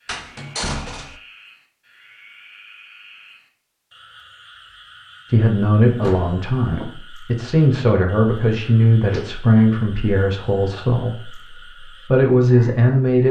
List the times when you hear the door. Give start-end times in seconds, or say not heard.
0.1-1.2, 6.0-7.0, 9.0-9.6.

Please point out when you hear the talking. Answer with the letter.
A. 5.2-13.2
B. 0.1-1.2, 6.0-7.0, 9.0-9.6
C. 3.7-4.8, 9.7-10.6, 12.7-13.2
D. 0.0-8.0
A.